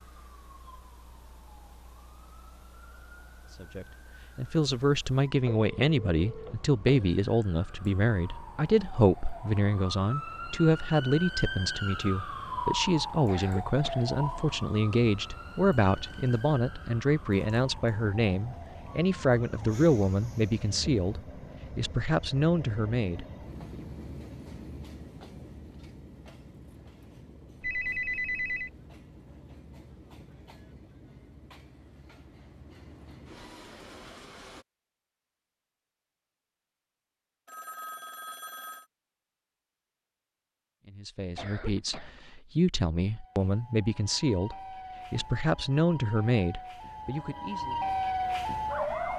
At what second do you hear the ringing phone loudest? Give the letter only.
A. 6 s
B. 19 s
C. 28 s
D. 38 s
C.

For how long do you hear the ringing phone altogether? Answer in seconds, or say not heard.
4 s.